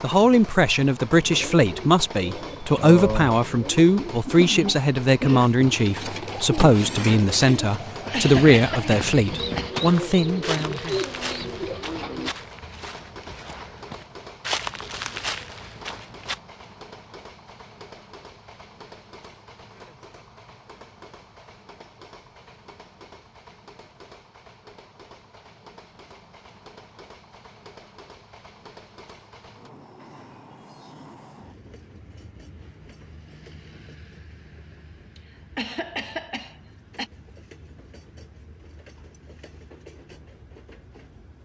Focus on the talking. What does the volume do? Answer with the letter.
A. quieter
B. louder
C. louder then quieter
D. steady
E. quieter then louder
D.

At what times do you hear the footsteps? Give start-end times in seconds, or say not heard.
8.3-16.4.